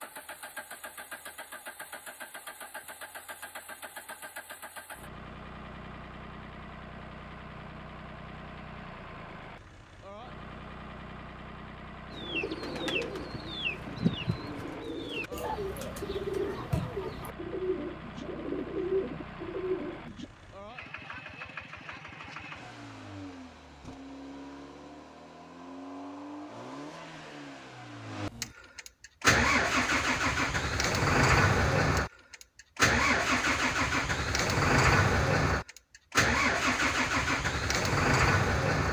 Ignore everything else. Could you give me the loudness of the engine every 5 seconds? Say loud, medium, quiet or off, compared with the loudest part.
quiet, quiet, quiet, quiet, quiet, medium, loud, loud.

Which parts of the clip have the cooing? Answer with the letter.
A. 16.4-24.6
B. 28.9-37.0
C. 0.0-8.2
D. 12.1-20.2
D.